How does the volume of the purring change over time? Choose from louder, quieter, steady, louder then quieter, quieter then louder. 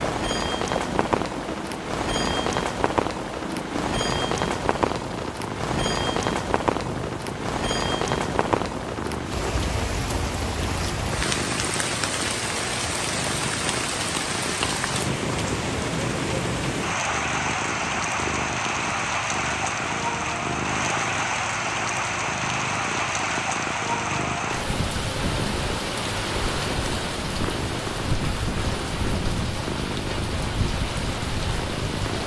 steady.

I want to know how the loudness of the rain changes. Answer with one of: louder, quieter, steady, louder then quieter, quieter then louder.
steady.